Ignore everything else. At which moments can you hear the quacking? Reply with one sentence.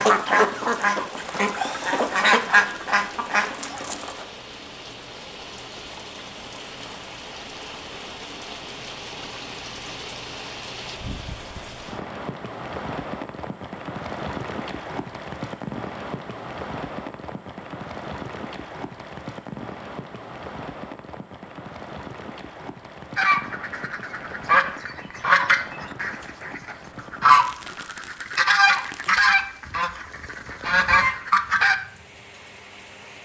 You can hear the quacking from 0.0 to 4.2 s and from 23.1 to 31.8 s.